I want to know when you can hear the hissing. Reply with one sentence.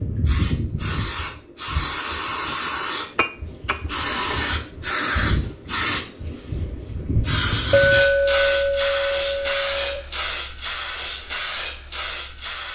You can hear the hissing from 0.0 to 12.7 s.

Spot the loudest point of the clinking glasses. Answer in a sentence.
The volume of the clinking glasses peaks at 8 seconds.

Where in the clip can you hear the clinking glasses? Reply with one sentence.
The clinking glasses can be heard from 3.1 to 3.8 s and from 7.7 to 10.0 s.